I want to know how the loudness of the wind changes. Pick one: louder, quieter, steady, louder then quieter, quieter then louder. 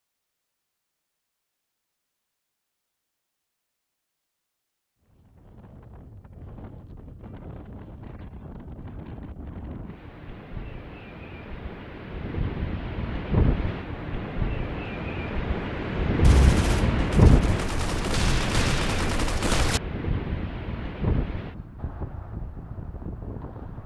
louder then quieter.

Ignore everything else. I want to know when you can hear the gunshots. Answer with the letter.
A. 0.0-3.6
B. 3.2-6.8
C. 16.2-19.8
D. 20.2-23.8
C.